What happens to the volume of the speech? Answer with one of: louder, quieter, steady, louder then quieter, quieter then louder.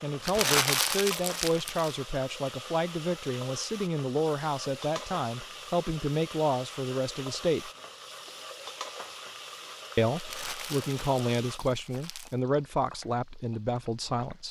steady.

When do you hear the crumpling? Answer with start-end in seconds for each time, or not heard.
0.2-1.9, 10.1-12.3.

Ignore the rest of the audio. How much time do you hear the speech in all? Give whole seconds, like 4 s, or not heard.
12 s.